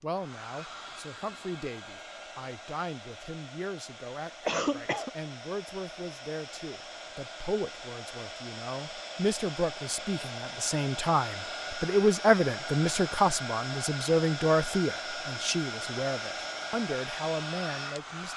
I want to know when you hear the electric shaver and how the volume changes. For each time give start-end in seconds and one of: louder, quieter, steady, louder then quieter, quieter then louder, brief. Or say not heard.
not heard.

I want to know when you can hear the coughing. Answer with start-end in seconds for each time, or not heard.
4.5-5.1.